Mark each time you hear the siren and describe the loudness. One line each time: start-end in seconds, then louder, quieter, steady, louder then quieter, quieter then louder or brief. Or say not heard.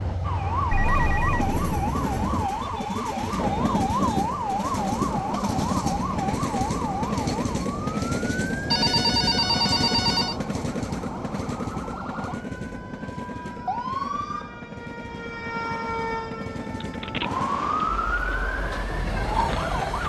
0.0-20.0 quieter then louder.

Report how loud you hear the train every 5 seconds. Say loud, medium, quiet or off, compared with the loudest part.
loud, loud, medium, medium.